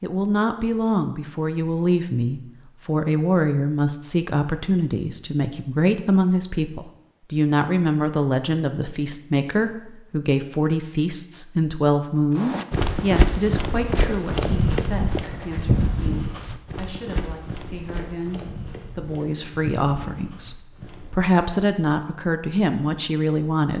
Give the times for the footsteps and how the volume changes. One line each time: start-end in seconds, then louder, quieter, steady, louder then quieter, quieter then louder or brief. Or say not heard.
12.3-21.2 quieter.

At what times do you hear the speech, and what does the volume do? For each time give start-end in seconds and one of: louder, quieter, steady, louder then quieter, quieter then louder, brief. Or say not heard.
0.0-23.7 quieter then louder.